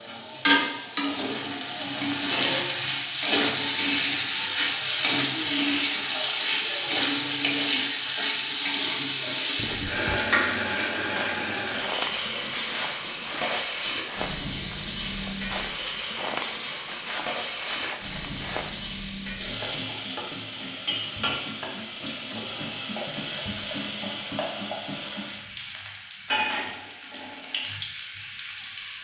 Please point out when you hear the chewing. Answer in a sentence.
The chewing can't be heard in this clip.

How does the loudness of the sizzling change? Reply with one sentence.
The volume of the sizzling goes down.